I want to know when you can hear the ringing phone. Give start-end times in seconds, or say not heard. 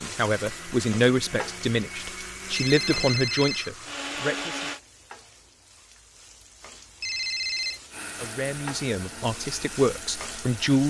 2.5-3.7, 7.0-7.8.